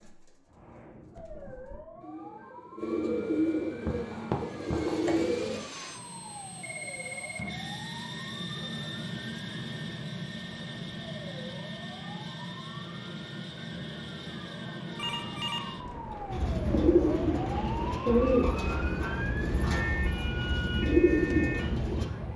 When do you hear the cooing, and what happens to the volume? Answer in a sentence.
You can hear the cooing from 0.0 to 5.7 s, getting louder; and from 16.3 to 22.1 s, getting quieter then louder.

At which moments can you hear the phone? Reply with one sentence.
You can hear the phone from 6.6 to 7.7 s and from 14.9 to 17.0 s.